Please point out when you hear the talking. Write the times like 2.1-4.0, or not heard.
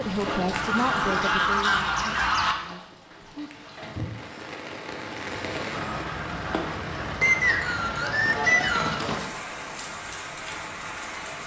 0.0-3.5.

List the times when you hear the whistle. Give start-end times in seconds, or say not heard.
7.2-9.0.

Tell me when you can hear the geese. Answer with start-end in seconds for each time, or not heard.
0.5-2.5, 7.8-9.2.